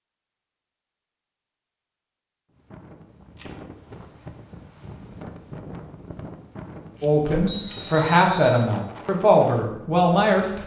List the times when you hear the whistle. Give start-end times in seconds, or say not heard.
7.5-8.6.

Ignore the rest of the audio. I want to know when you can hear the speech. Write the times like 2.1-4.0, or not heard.
7.0-10.6.